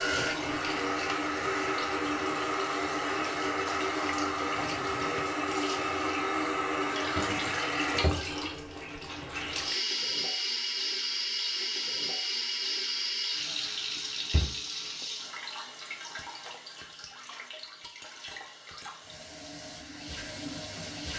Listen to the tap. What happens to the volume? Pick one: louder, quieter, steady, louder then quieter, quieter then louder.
quieter.